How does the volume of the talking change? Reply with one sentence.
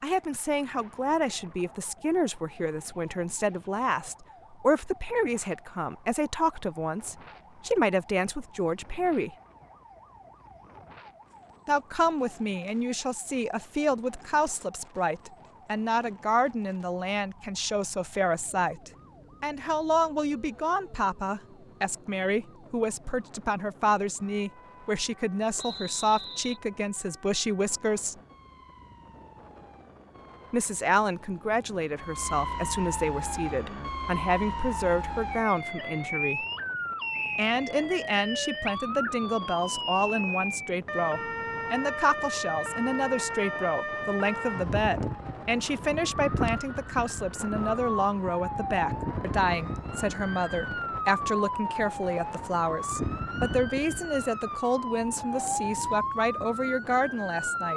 The volume of the talking stays about the same.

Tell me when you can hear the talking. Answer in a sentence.
The talking can be heard from 0.0 to 9.3 s, from 11.7 to 28.1 s, from 30.5 to 36.5 s and from 37.4 to 57.7 s.